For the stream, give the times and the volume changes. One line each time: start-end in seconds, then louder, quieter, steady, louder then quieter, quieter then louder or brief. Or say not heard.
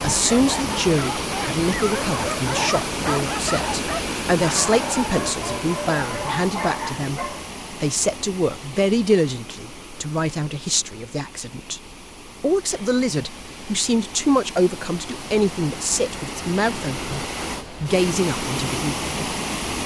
0.0-19.8 quieter then louder.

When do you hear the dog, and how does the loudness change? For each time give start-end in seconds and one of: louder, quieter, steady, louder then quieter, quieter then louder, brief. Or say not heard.
0.0-7.5 steady.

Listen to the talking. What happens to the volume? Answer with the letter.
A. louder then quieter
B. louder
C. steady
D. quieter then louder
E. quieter
C.